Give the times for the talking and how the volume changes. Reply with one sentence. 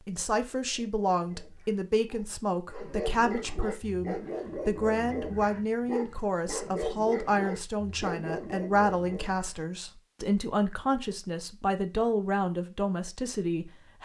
The talking can be heard from 0.1 to 14.0 s, at a steady volume.